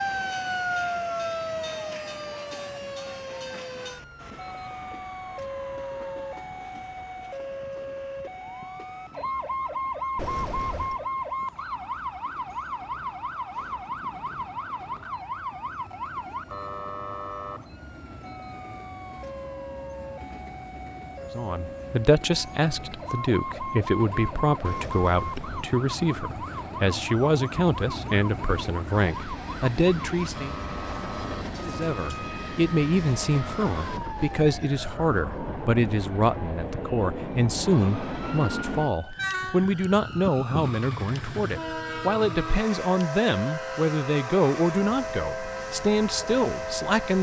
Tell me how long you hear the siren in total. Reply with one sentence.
The siren can be heard for 47 seconds in total.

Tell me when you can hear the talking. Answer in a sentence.
You can hear the talking from 21.3 to 30.6 s and from 31.6 to 47.1 s.